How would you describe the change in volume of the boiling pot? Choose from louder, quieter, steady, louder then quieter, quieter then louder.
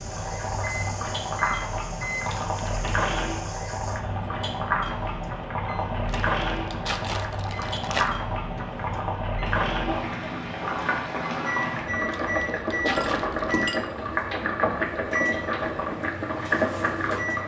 steady.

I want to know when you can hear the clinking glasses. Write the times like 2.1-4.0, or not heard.
12.9-13.8.